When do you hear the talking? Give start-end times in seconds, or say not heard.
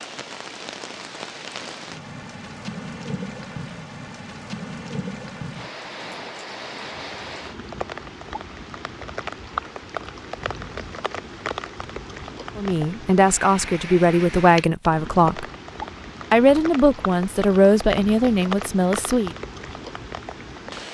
12.6-15.4, 16.3-19.4.